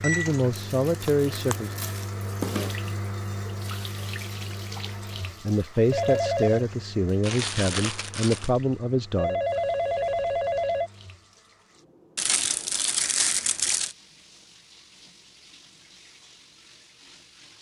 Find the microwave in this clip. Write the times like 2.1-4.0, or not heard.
0.0-1.9.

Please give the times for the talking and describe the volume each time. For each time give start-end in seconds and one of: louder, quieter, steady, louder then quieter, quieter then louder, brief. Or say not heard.
0.0-1.8 brief
5.4-9.4 steady.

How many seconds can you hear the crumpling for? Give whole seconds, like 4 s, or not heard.
5 s.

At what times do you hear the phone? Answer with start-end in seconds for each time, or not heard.
5.9-6.7, 9.2-10.9.